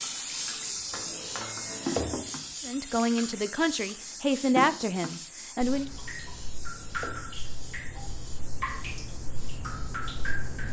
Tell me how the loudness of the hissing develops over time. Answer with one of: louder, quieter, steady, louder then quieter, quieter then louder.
quieter.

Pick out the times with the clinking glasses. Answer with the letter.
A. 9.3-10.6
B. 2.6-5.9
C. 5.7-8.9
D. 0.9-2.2
D.